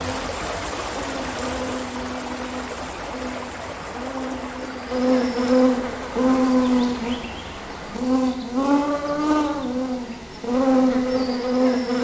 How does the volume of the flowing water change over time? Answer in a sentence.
The volume of the flowing water goes down.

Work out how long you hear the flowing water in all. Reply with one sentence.
The flowing water can be heard for 8 seconds in total.